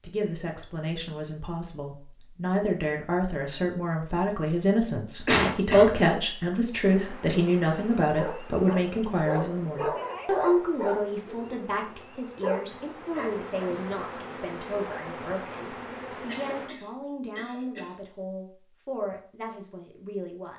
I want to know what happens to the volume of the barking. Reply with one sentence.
The volume of the barking goes down, then up.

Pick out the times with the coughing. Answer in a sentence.
The coughing can be heard from 5.2 to 5.9 s and from 16.2 to 18.0 s.